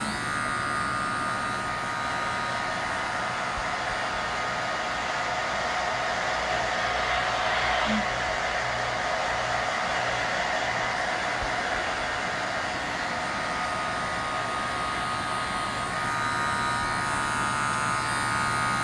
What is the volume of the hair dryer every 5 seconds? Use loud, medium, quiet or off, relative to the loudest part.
medium, loud, loud, medium.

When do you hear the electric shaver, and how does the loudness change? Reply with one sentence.
You can hear the electric shaver from 0.0 to 18.7 s, getting quieter then louder.